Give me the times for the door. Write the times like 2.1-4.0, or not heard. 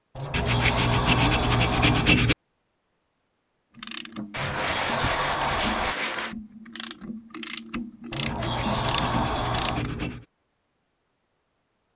0.1-2.1, 4.3-6.0, 8.1-9.8.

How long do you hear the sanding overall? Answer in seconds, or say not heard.
6 s.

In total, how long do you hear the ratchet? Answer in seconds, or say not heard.
6 s.